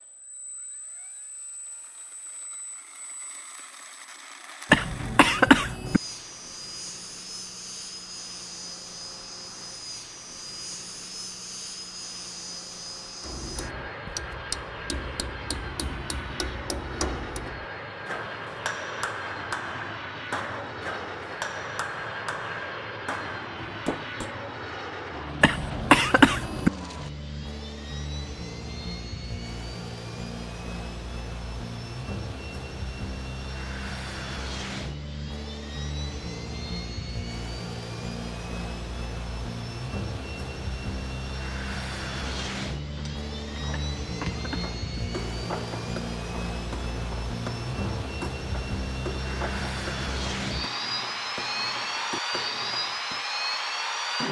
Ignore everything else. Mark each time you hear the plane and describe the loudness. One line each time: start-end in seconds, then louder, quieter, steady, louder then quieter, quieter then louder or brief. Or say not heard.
0.0-54.2 louder.